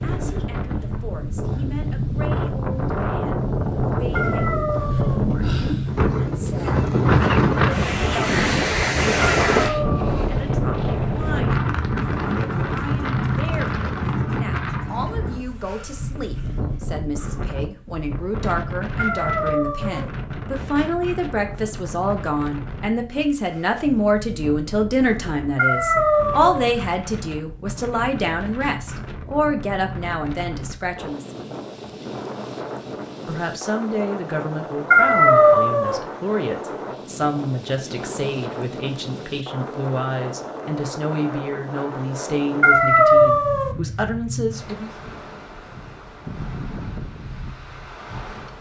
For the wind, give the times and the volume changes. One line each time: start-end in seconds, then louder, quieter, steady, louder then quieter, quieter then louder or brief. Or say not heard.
0.0-48.5 quieter.